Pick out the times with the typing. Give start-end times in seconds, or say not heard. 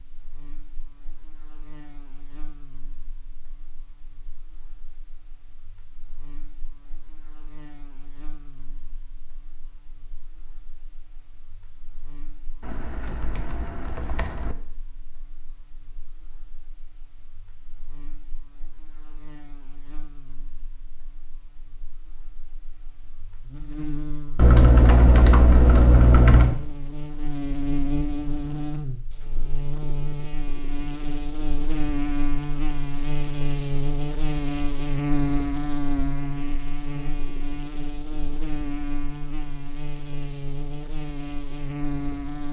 12.6-14.6, 24.4-26.6.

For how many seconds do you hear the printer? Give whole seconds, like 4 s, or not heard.
not heard.